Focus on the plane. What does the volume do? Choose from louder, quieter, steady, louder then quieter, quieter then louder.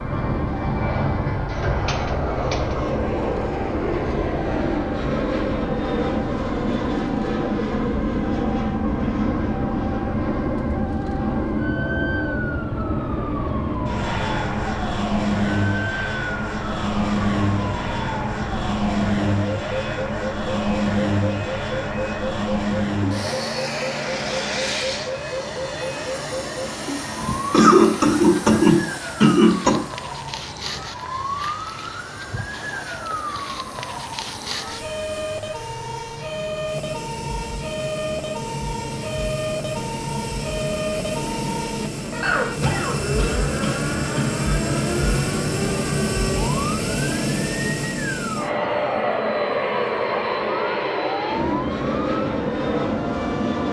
quieter then louder.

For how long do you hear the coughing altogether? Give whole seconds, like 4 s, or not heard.
6 s.